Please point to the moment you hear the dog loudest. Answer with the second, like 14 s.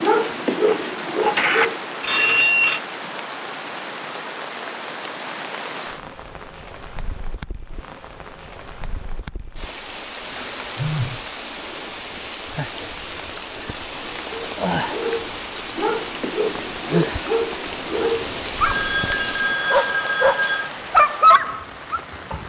21 s.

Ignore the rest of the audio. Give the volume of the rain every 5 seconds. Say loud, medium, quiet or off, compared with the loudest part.
loud, medium, loud, loud, medium.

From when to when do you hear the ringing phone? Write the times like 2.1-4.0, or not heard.
0.7-2.8, 10.8-11.2, 18.6-20.7.